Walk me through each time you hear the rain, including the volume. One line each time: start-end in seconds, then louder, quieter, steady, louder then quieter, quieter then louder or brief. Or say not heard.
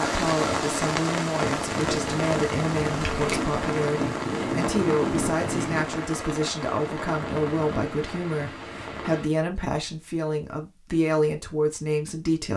0.0-9.3 quieter.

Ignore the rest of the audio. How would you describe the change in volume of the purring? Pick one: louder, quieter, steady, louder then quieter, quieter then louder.
louder.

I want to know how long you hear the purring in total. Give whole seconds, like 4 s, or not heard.
4 s.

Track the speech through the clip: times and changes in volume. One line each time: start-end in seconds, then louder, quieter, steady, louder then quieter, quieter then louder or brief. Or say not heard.
0.0-12.5 steady.